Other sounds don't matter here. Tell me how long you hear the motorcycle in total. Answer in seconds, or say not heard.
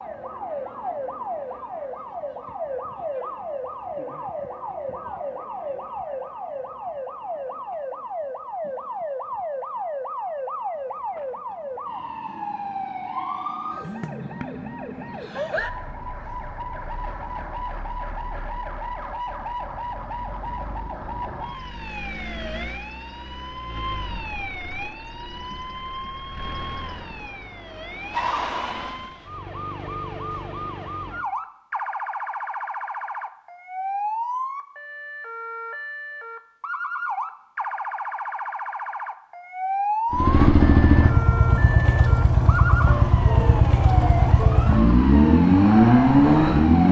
7 s.